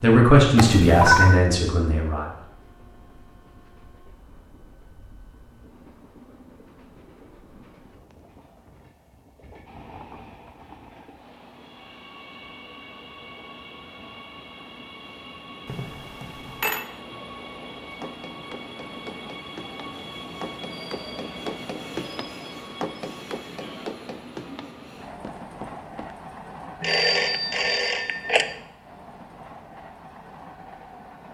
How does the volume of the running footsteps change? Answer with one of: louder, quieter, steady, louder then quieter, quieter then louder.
louder then quieter.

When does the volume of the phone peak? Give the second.
1 s.